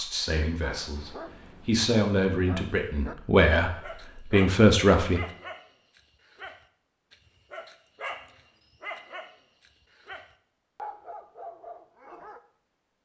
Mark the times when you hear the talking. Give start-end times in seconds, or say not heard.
0.0-5.2.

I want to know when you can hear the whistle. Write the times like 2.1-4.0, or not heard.
not heard.